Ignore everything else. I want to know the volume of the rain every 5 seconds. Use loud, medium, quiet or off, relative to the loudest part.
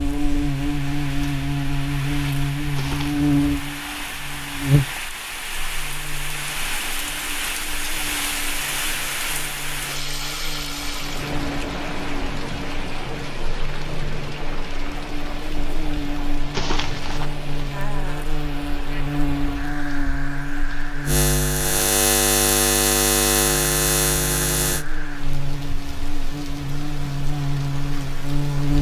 medium, loud, loud, medium, medium, medium.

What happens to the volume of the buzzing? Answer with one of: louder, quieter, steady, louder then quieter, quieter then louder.
quieter then louder.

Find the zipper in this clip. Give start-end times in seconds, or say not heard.
2.8-3.2, 16.5-17.3.